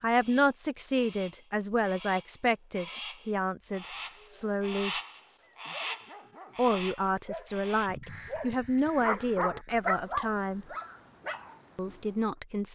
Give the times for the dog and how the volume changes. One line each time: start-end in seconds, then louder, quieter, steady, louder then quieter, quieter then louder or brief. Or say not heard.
5.3-11.9 louder then quieter.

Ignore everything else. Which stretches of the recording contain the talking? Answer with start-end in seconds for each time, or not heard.
0.0-5.0, 6.5-10.7, 11.8-12.6.